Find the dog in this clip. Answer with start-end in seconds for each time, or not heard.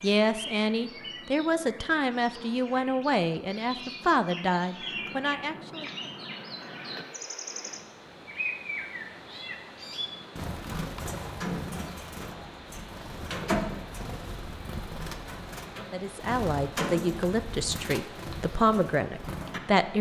not heard.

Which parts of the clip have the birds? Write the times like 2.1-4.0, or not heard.
0.0-19.9.